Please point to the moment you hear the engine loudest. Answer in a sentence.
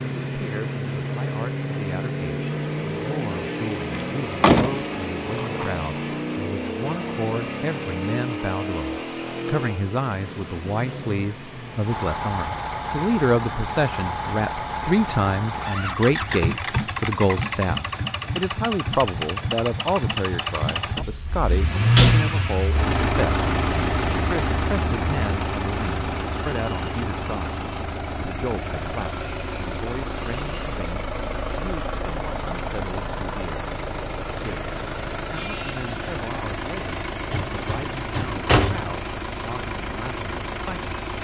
The volume of the engine peaks at 22 seconds.